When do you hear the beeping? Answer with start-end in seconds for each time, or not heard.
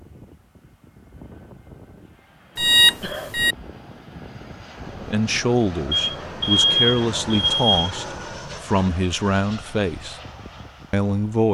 2.5-3.5, 5.9-7.9.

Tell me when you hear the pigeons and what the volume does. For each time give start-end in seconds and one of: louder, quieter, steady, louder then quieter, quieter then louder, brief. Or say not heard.
not heard.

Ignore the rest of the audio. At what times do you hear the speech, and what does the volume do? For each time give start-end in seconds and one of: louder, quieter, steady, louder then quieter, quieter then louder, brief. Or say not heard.
5.0-10.2 steady
10.9-11.4 brief.